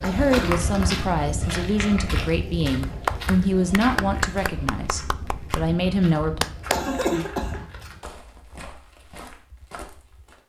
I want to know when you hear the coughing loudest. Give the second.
7 s.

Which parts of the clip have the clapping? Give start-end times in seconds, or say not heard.
2.8-7.0.